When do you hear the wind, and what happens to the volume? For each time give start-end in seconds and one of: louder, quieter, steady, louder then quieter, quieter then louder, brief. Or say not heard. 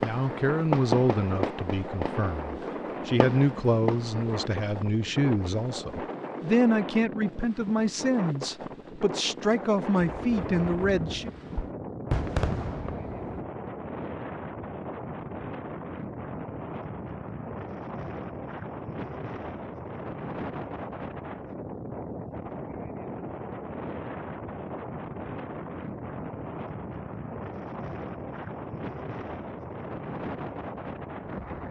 0.0-31.6 steady.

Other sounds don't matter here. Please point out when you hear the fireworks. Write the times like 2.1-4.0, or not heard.
0.0-4.3, 10.1-13.4.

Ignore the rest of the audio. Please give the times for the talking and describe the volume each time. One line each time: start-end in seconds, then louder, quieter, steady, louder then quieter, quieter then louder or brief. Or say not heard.
0.0-11.3 steady.